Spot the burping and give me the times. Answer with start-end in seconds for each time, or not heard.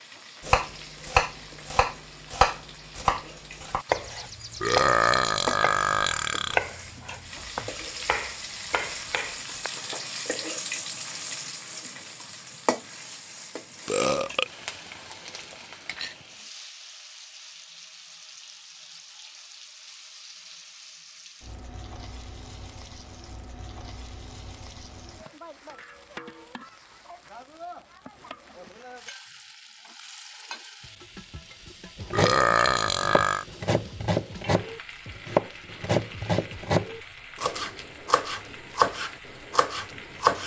4.6-6.5, 13.8-14.5, 32.1-33.5.